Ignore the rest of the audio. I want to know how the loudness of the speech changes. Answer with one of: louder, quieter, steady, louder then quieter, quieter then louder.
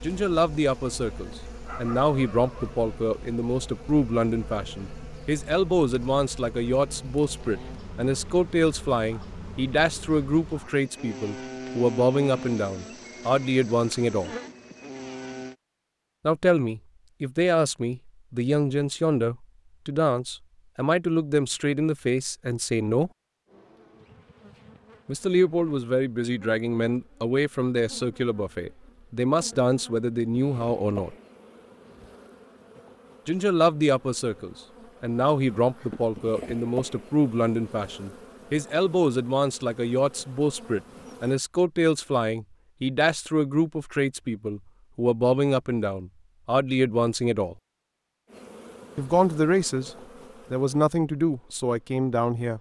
steady.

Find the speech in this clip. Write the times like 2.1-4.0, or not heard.
0.0-14.3, 16.2-23.1, 25.1-31.1, 33.2-47.5, 49.0-52.5.